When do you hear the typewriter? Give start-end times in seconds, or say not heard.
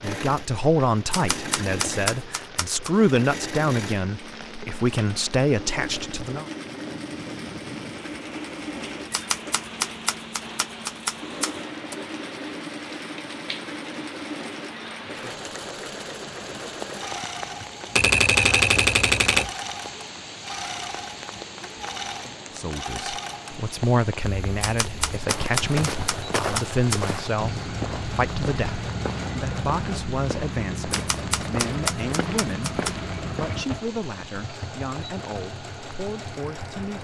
1.1-2.9, 9.1-11.9, 17.9-19.5, 24.6-27.0, 30.9-32.9.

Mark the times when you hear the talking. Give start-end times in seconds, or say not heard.
0.0-6.5, 22.6-36.9.